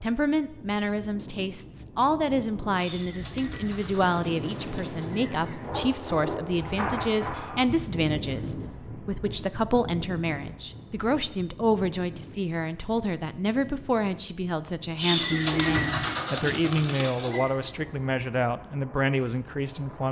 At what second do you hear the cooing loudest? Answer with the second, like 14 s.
16 s.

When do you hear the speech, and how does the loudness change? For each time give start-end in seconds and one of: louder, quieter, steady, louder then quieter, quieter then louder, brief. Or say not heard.
0.0-20.0 steady.